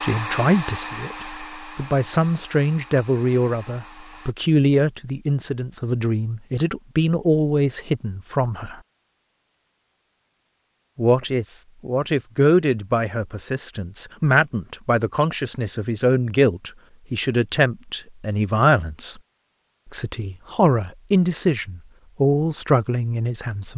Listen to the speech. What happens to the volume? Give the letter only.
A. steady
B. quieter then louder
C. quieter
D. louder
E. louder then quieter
A.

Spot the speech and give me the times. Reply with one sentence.
The speech can be heard from 0.0 to 8.8 s, from 10.9 to 19.1 s and from 19.9 to 23.7 s.